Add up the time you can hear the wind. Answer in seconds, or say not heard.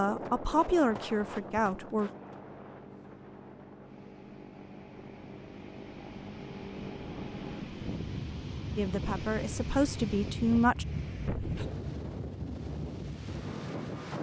14 s.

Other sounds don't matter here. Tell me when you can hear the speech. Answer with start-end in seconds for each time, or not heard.
0.0-2.1, 8.8-10.8.